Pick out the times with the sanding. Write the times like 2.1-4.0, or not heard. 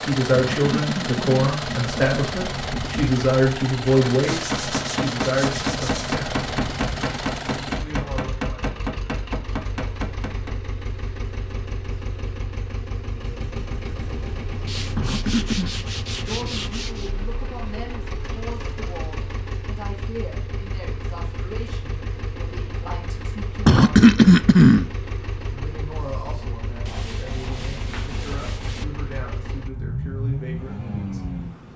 4.2-6.2, 14.7-17.1, 26.9-28.9.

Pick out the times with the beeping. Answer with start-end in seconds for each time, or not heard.
not heard.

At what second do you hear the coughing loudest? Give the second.
24 s.